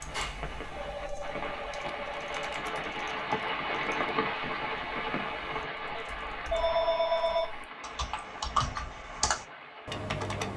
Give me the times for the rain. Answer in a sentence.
You can hear the rain from 0.0 to 10.5 s.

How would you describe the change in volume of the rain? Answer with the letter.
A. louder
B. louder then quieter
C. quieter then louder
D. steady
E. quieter
B.